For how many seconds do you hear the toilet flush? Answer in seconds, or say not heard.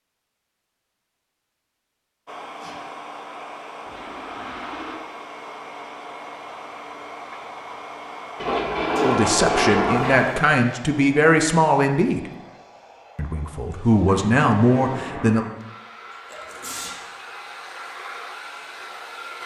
5 s.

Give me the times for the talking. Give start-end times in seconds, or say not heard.
9.0-12.3, 13.2-15.4.